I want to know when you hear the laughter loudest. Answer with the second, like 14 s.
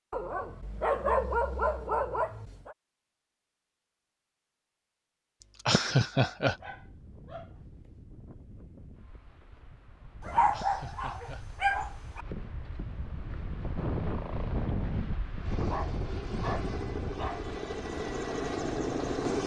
6 s.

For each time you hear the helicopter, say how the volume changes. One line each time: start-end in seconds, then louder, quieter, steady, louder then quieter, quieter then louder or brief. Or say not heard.
13.8-19.4 louder.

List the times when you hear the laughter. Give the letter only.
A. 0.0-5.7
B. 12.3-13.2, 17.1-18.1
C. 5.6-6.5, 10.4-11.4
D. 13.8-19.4
C.